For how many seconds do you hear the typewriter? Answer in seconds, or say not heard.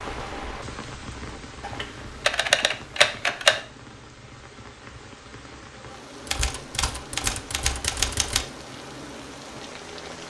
4 s.